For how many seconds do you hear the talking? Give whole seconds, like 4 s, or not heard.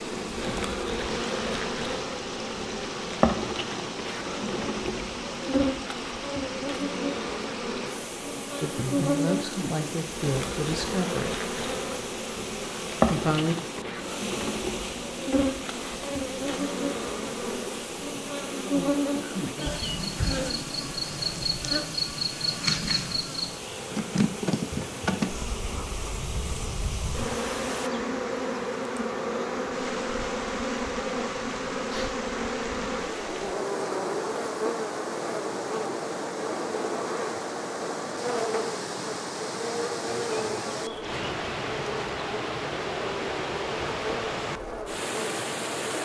3 s.